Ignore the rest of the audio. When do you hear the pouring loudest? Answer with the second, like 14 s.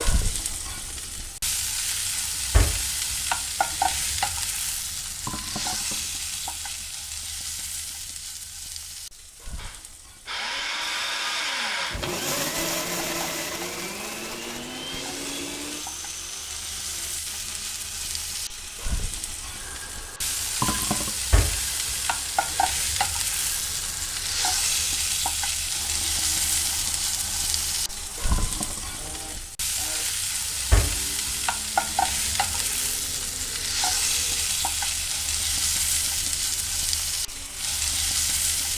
21 s.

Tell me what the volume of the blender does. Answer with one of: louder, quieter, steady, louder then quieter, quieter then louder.
quieter.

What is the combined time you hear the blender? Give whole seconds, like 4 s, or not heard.
29 s.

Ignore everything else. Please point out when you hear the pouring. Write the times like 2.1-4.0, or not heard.
5.2-6.8, 20.6-21.2, 28.3-28.9.